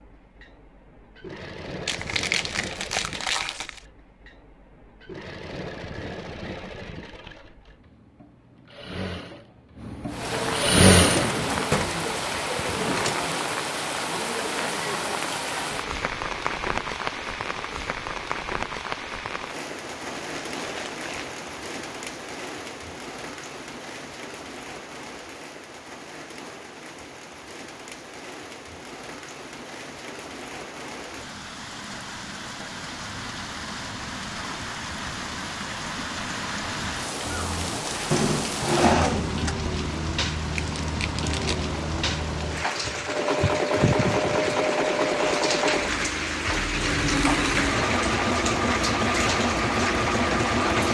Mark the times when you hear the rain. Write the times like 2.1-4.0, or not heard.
10.1-50.8.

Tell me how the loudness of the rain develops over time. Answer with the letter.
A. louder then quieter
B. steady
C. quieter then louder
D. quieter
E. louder
C.